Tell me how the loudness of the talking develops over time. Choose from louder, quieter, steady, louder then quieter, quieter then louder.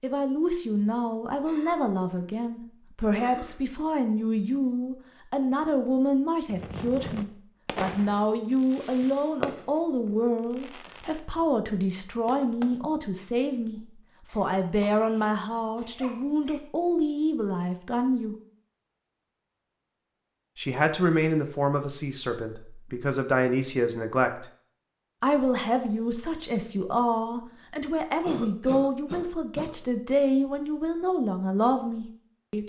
steady.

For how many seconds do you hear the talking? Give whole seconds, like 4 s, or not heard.
30 s.